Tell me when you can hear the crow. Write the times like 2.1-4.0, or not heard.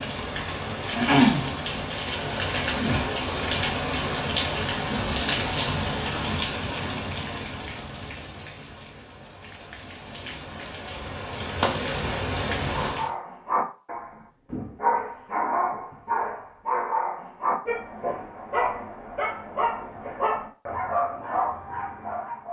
not heard.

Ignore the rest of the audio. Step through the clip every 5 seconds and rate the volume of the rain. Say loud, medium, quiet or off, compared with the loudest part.
loud, medium, medium, off, off.